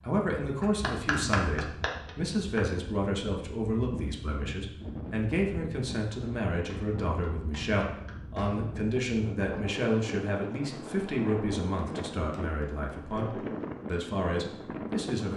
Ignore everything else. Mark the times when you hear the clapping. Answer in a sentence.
The clapping can be heard from 0.6 to 2.6 s, from 6.7 to 8.7 s and from 11.8 to 13.2 s.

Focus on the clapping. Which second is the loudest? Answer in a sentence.
The volume of the clapping peaks at 1 second.